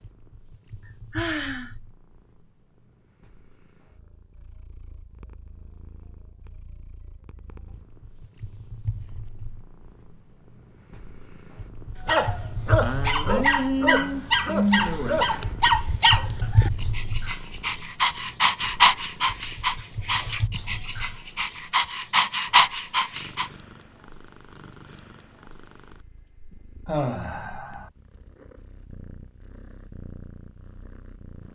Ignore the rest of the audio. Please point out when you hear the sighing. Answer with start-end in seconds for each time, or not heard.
1.1-1.7, 12.8-15.2, 26.9-27.9.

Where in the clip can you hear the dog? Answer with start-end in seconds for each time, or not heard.
12.0-23.5.